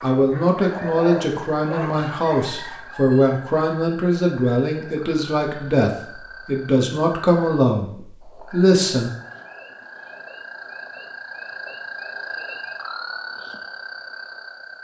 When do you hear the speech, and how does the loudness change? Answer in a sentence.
The speech can be heard from 0.0 to 9.1 s, at a steady volume.